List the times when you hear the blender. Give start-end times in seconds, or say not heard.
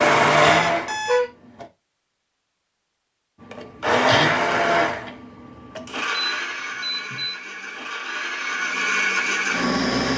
0.0-1.6, 3.4-10.1.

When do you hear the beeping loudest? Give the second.
1 s.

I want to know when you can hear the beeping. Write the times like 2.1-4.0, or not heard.
0.4-1.3, 6.2-7.3.